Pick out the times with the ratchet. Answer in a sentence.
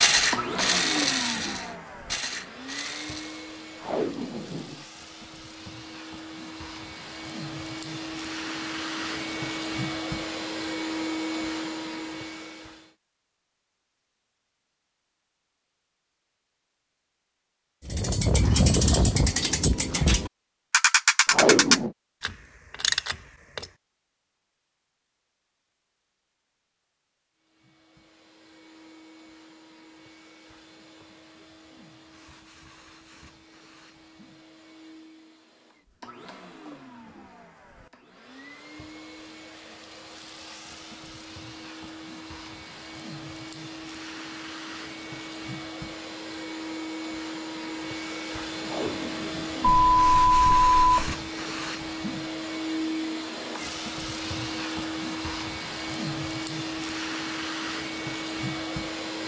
You can hear the ratchet from 0.0 to 3.5 s and from 17.9 to 23.7 s.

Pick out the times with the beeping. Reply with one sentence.
The beeping can be heard from 49.7 to 51.1 s.